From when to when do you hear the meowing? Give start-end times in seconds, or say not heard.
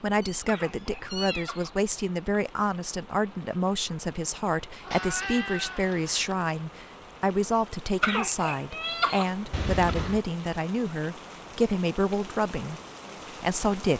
0.2-1.5, 4.8-6.3, 9.5-10.2.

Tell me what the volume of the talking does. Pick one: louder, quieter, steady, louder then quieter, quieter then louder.
steady.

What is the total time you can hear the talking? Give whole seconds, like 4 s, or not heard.
14 s.